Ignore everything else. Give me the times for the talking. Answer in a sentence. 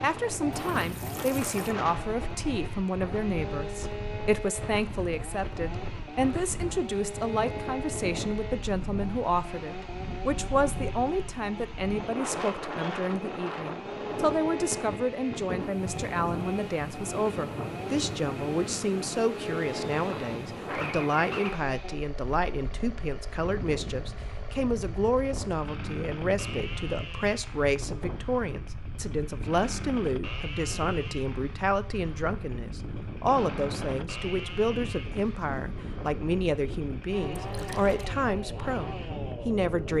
The talking can be heard from 0.0 to 39.9 s.